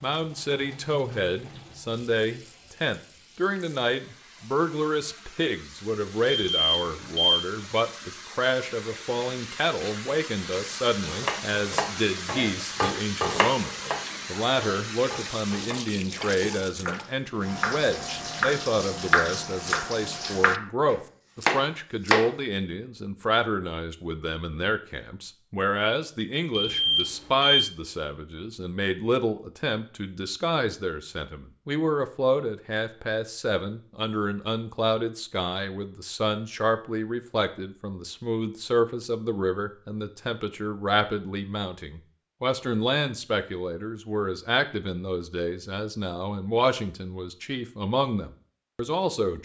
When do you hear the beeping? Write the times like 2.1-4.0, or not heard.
6.2-7.4, 26.5-27.6.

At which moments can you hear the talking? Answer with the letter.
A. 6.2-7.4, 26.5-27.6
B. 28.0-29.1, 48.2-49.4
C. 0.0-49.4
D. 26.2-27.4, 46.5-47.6
C.